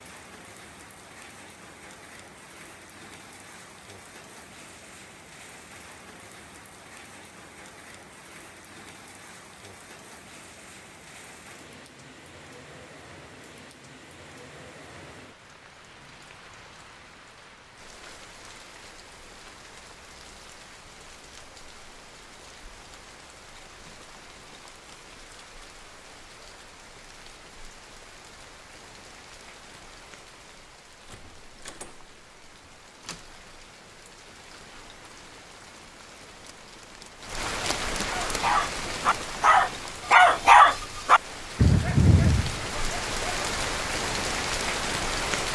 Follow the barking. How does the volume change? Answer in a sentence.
The volume of the barking goes up, then down.